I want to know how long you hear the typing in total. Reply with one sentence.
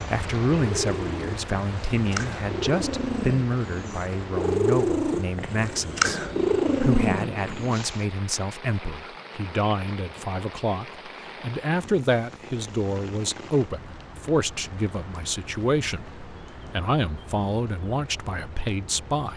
You can't hear the typing here.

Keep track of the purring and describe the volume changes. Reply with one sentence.
The volume of the purring goes up.